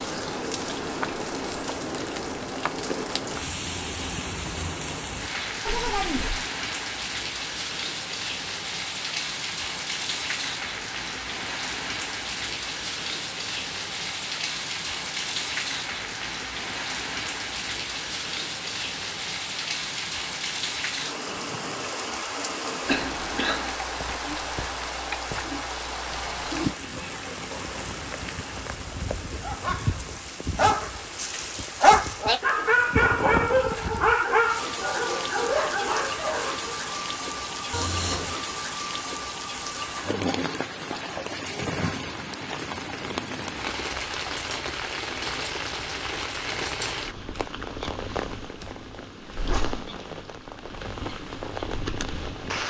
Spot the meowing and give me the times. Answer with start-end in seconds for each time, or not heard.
5.7-6.5, 37.7-38.4.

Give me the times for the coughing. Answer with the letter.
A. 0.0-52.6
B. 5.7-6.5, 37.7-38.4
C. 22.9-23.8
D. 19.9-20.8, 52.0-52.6
C.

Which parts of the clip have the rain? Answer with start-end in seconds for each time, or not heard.
0.0-52.6.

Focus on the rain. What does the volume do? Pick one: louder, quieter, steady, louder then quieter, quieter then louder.
steady.